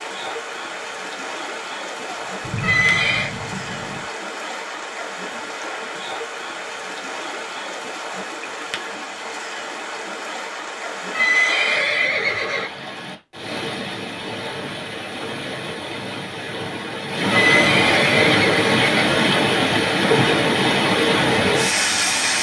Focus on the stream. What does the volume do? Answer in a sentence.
The loudness of the stream goes up.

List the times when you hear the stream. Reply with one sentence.
The stream can be heard from 0.0 to 22.3 s.